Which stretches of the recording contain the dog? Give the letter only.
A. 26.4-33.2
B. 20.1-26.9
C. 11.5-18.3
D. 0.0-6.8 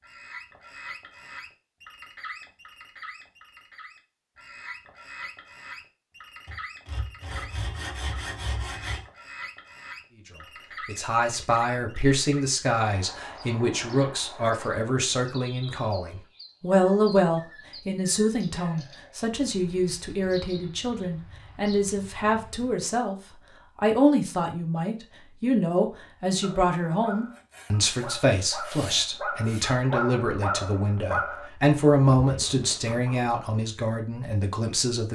A.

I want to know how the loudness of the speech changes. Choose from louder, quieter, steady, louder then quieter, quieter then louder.
steady.